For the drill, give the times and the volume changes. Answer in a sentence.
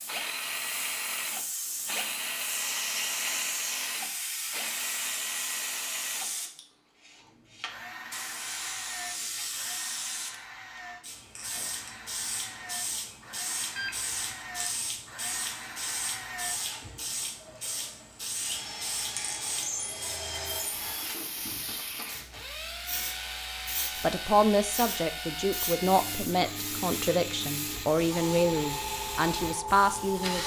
You can hear the drill from 0.0 to 30.4 s, getting quieter then louder.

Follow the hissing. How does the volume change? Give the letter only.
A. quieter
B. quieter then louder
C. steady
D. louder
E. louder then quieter
C.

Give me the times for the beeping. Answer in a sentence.
The beeping can be heard from 13.8 to 14.3 s.